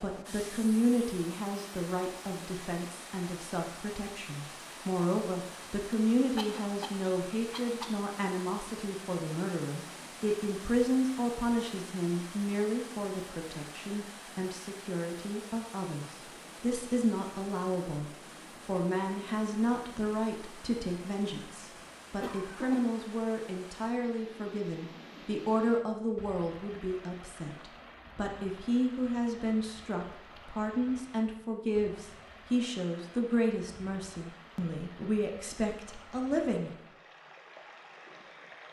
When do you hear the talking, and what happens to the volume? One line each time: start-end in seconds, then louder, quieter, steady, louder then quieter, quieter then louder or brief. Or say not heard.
0.0-36.7 steady.